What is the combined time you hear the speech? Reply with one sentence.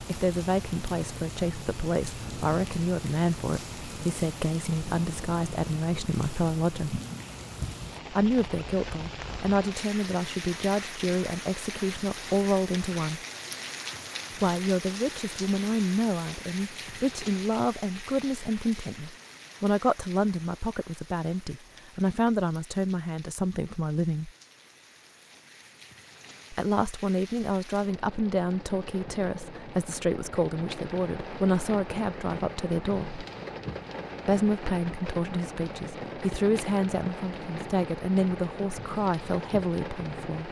The speech can be heard for 35 seconds in total.